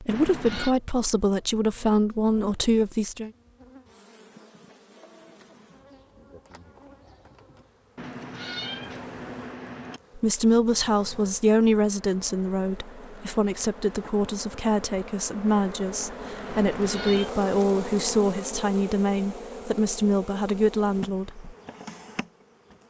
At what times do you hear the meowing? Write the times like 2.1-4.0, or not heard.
0.1-0.8, 8.0-10.0, 16.4-17.3.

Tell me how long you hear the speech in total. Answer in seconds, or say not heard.
15 s.